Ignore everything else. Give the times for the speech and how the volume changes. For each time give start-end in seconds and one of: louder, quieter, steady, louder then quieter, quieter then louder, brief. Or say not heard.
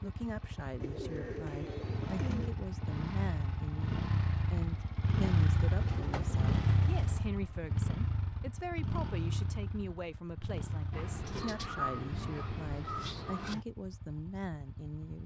0.0-15.2 steady.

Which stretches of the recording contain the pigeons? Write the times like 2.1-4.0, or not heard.
0.8-2.5, 5.7-7.2, 10.9-13.7.